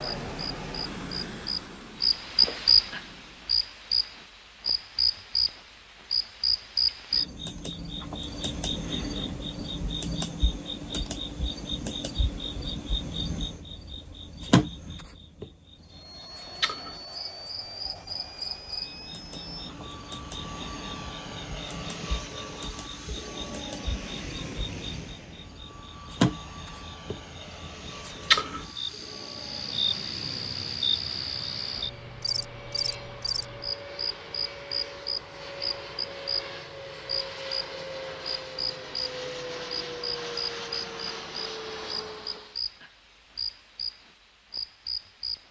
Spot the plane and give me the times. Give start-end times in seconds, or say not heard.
0.0-3.5, 15.8-42.6.